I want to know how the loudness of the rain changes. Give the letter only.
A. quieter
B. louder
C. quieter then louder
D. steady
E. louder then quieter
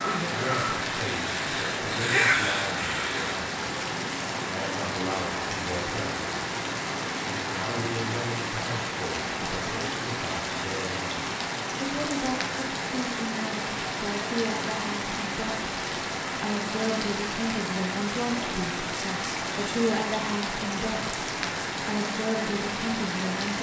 D.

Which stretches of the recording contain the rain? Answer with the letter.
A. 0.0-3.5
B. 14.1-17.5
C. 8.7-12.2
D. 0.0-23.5
D.